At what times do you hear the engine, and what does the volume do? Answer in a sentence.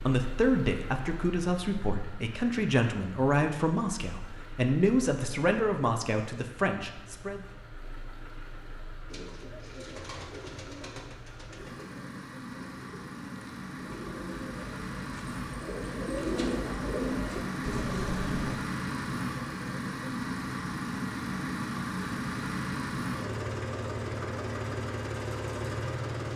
The engine can be heard from 0.0 to 26.3 s, getting louder.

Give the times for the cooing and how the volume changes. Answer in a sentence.
You can hear the cooing from 9.1 to 18.6 s, getting quieter then louder.